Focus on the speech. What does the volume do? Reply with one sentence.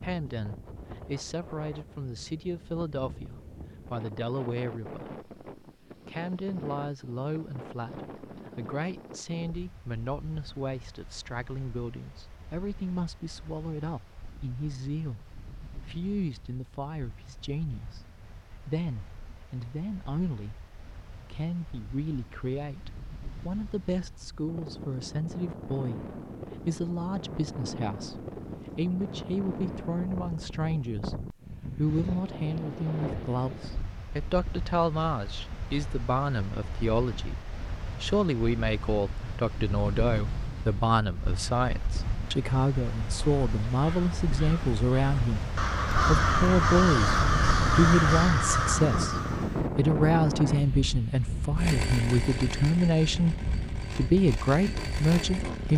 The volume of the speech goes up.